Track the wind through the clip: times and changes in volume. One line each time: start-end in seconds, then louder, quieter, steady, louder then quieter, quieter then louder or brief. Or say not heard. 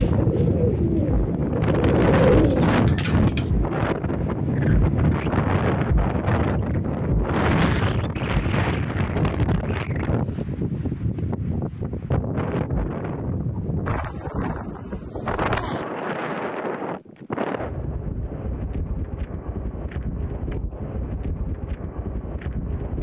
0.0-22.9 quieter.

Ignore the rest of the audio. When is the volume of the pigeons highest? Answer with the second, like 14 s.
2 s.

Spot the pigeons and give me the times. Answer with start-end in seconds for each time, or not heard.
0.0-3.5.